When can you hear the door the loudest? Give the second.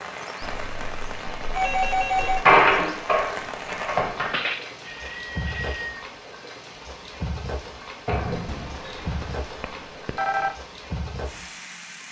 3 s.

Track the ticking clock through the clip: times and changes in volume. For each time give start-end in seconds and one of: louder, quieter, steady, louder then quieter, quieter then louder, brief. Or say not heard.
not heard.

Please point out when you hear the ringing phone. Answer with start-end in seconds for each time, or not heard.
0.4-2.5, 4.3-6.0, 8.4-10.6.